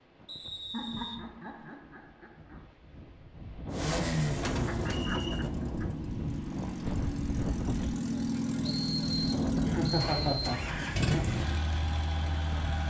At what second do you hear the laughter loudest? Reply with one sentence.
The loudest moment of the laughter is at 10 seconds.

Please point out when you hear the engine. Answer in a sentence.
The engine can be heard from 3.7 to 12.8 s.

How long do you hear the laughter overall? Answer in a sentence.
The laughter can be heard for 5 seconds in total.